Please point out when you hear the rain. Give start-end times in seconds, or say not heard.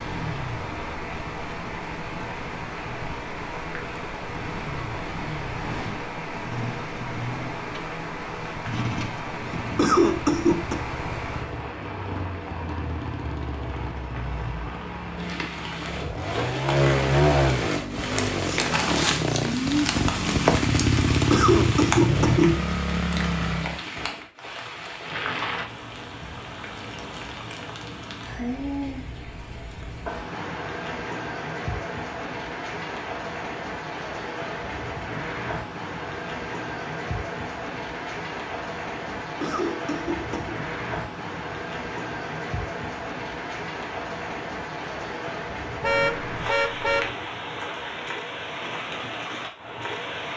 0.0-50.3.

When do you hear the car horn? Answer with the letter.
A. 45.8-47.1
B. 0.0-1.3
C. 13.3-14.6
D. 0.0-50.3
A.